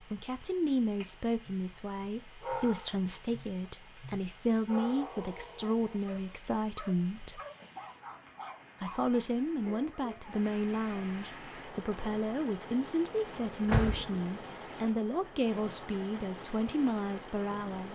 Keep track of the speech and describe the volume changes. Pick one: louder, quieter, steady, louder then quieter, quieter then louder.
steady.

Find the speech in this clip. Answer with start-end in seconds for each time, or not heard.
0.0-7.4, 8.8-17.9.